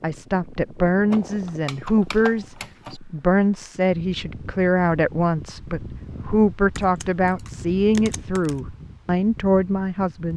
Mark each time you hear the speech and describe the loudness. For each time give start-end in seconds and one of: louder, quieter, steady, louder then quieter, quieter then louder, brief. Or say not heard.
0.0-10.3 steady.